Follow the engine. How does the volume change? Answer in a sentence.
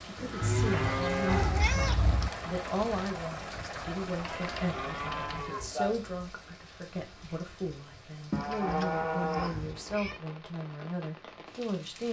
The loudness of the engine stays about the same.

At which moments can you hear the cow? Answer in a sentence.
You can hear the cow from 0.1 to 1.6 s, from 4.7 to 6.0 s and from 8.3 to 10.2 s.